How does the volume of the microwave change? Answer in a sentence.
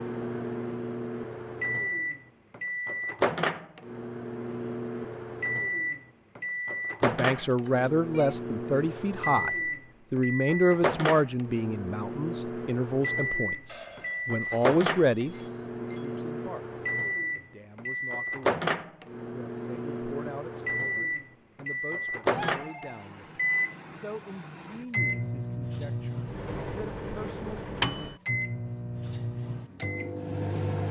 The loudness of the microwave stays about the same.